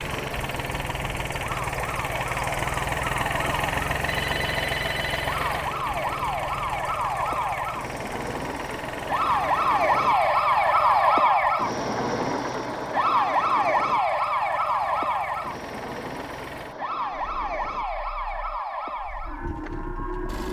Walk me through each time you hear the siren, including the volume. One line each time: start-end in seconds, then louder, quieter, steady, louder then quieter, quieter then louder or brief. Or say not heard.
0.0-20.4 louder then quieter.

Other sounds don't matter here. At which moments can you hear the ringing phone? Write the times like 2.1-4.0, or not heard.
4.0-5.3.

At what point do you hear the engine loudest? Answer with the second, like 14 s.
3 s.